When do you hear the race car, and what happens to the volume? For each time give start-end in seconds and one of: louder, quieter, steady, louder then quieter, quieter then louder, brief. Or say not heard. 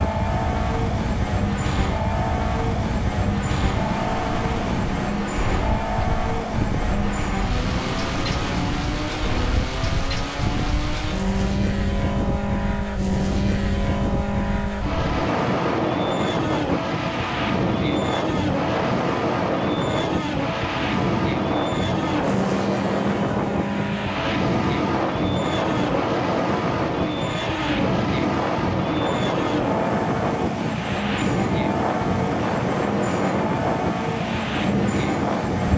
0.0-35.7 steady.